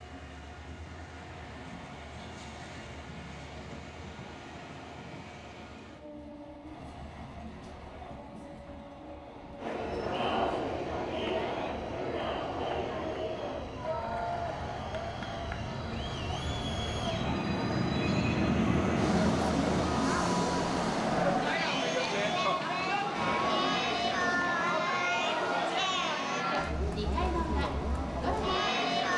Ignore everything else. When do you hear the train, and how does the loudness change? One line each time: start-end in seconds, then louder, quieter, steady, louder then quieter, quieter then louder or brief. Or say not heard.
0.0-29.1 louder then quieter.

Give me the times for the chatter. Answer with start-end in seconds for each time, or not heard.
9.6-29.1.